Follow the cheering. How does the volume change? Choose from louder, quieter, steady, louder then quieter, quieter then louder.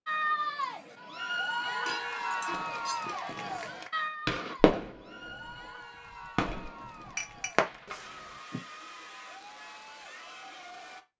quieter.